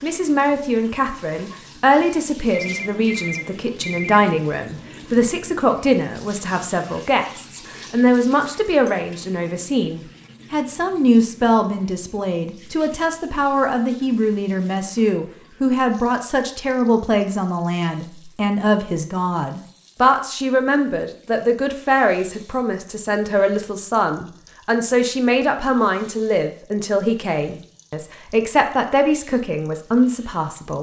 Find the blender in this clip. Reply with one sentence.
You can't hear the blender here.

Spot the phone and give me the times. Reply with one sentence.
The phone can be heard from 2.5 to 4.2 s.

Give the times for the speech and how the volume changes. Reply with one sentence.
You can hear the speech from 0.0 to 30.7 s, at a steady volume.